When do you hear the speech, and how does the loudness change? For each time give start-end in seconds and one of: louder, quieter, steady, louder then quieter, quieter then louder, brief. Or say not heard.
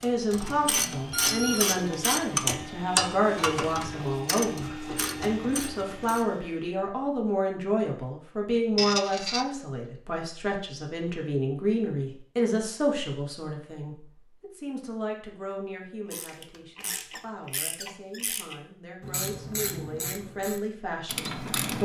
0.0-21.8 quieter.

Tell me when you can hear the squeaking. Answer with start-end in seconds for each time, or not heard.
1.1-1.8, 8.8-9.4, 16.4-18.4.